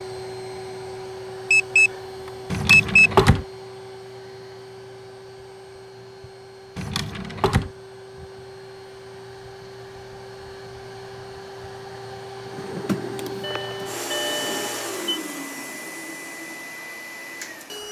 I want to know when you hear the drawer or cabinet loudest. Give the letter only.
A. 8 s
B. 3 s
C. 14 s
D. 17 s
B.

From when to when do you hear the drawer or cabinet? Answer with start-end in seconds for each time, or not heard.
2.5-3.5, 6.8-7.7, 12.4-14.7.